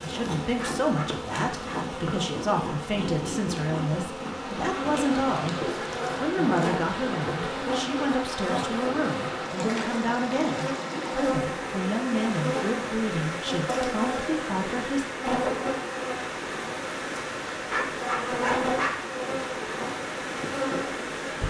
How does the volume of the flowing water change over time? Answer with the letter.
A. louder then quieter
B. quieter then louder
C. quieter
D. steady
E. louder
D.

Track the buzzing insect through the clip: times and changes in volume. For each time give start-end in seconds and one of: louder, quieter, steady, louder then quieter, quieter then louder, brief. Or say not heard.
0.0-21.4 steady.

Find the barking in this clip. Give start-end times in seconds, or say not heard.
0.4-1.8, 17.5-18.9.